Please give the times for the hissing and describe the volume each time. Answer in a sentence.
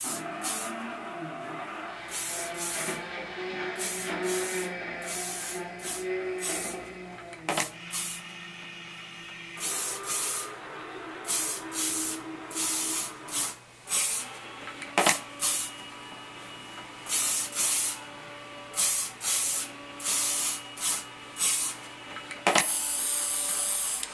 The hissing can be heard from 0.0 to 24.0 s, getting louder.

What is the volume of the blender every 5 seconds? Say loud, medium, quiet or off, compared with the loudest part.
loud, loud, medium, medium, medium.